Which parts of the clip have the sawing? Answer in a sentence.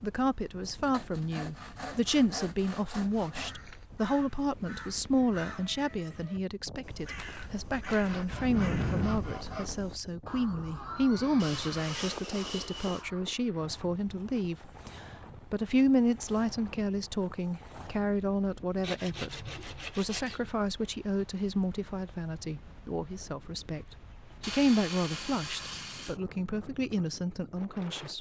You can hear the sawing from 0.8 to 3.5 s, from 7.8 to 9.7 s, from 11.4 to 13.1 s, from 18.8 to 20.4 s and from 24.4 to 26.2 s.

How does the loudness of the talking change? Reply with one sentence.
The volume of the talking stays about the same.